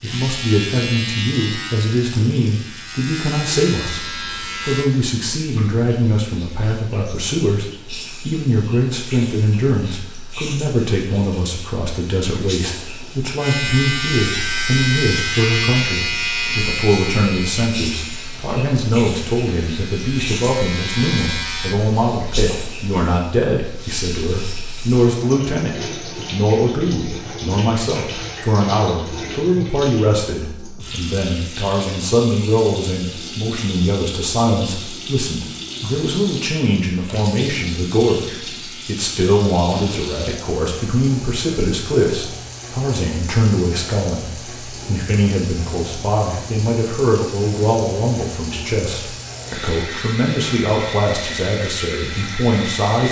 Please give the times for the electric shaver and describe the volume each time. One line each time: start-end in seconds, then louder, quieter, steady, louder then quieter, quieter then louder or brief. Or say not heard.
0.0-4.9 quieter then louder
13.3-21.8 quieter then louder.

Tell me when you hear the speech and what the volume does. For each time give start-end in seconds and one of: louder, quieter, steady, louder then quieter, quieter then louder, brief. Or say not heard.
0.0-53.0 steady.